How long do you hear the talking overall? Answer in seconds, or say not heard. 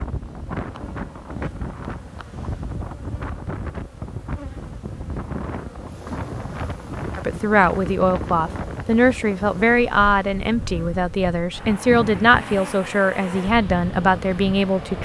8 s.